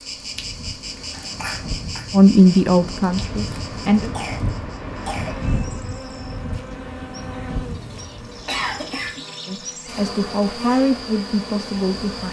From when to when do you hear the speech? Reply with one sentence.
You can hear the speech from 2.1 to 4.1 s and from 9.4 to 12.2 s.